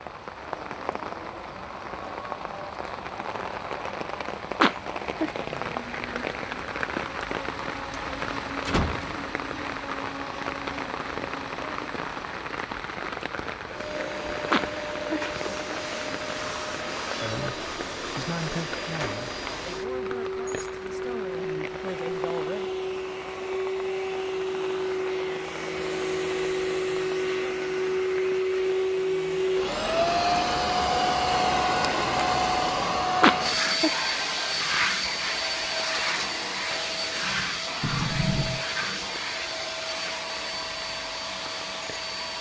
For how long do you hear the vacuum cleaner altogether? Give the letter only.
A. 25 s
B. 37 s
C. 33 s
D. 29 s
D.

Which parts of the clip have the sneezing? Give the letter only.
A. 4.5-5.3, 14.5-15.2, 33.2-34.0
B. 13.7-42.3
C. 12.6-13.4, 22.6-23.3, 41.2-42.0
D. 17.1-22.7
A.